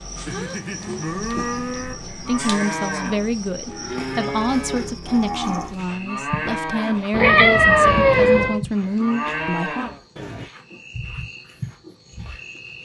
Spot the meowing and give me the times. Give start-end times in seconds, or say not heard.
1.1-2.6, 7.1-8.6.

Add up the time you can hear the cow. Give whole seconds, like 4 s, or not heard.
10 s.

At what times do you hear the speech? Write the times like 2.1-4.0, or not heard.
2.2-9.9.